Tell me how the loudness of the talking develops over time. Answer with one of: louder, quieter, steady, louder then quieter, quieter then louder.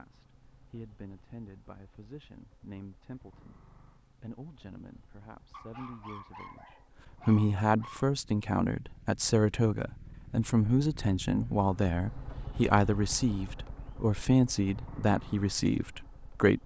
louder.